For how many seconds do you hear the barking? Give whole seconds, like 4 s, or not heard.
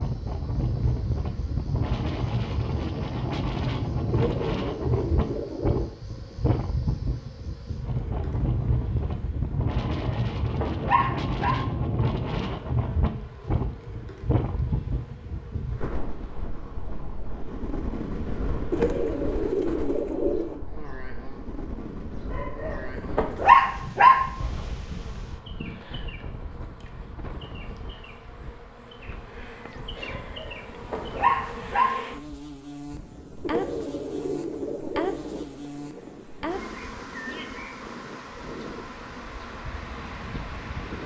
5 s.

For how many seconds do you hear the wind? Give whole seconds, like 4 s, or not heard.
41 s.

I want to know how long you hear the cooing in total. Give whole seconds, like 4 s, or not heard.
6 s.